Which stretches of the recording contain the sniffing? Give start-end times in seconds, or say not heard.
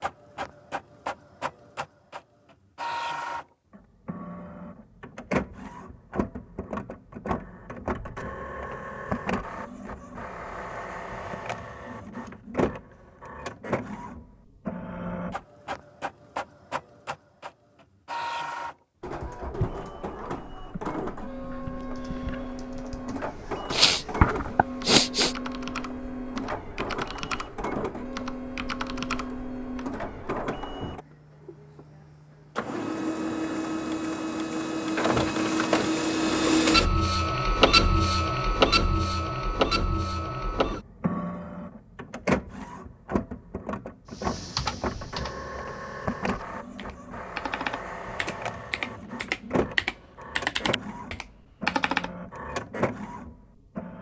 23.7-25.4.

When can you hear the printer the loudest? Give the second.
38 s.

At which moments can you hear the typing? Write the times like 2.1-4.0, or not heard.
21.8-29.9, 44.1-52.1.